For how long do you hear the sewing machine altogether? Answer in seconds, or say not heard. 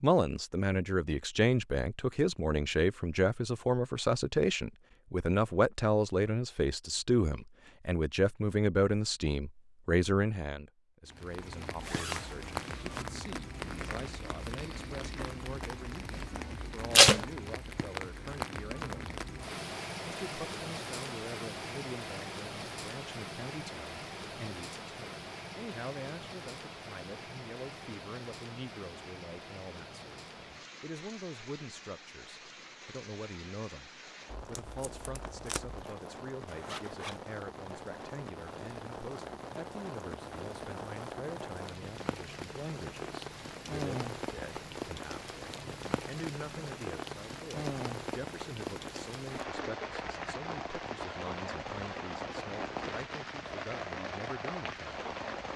not heard.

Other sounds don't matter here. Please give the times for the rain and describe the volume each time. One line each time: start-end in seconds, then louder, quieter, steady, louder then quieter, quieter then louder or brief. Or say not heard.
11.1-55.5 quieter then louder.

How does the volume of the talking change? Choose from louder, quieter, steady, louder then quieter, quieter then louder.
quieter.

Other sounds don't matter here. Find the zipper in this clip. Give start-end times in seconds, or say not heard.
11.8-13.1, 35.8-37.2.